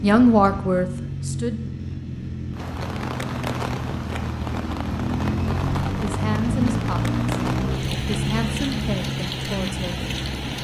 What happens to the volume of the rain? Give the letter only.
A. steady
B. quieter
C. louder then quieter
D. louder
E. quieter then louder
A.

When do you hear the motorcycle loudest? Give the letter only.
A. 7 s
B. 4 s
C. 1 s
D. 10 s
A.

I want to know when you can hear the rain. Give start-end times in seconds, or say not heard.
2.5-10.5.